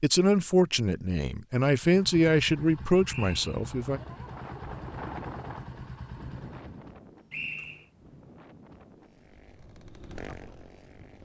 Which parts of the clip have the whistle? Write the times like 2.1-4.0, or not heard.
3.0-3.6, 7.3-7.8.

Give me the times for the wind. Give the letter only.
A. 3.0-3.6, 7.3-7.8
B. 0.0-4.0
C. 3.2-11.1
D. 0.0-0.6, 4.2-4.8
C.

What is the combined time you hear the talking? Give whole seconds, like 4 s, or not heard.
4 s.